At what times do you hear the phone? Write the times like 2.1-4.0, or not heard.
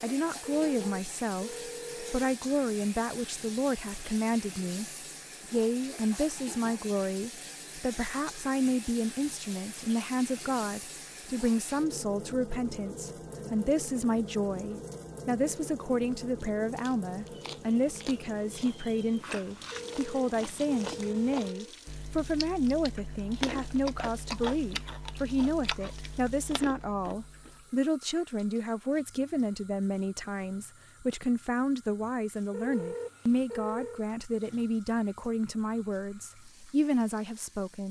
0.5-2.2, 19.7-21.8, 32.5-34.0.